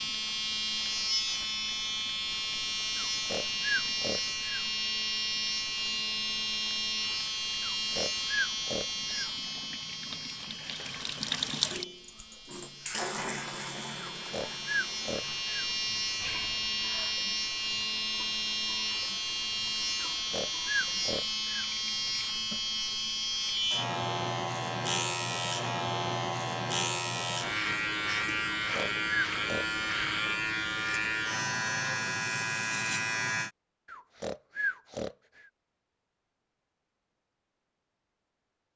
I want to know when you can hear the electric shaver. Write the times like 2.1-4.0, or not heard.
0.0-33.5.